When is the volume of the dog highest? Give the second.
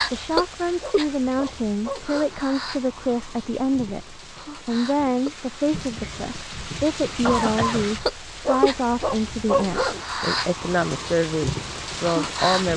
10 s.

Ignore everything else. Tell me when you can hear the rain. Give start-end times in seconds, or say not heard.
0.0-12.7.